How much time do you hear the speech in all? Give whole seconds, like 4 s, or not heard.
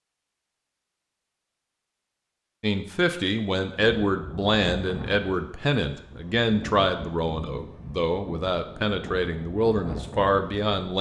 8 s.